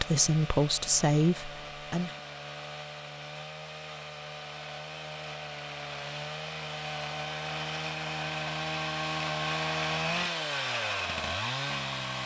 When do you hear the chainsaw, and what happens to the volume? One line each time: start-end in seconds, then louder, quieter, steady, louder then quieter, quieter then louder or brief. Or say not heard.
0.0-12.2 louder.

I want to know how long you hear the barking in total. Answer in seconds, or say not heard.
not heard.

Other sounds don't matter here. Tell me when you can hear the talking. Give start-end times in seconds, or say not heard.
0.0-2.1.